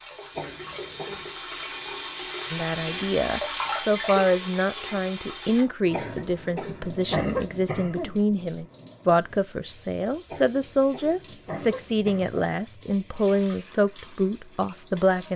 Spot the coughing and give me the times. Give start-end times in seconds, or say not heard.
0.3-1.3, 5.9-8.2, 10.3-12.4.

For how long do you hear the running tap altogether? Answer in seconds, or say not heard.
15 s.